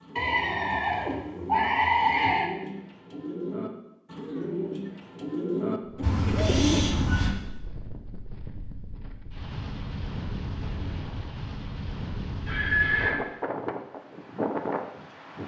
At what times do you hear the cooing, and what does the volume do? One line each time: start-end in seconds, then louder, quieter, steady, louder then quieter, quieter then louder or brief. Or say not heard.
0.0-6.8 louder.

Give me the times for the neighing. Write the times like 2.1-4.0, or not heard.
0.1-2.5, 6.0-7.3, 12.4-13.2.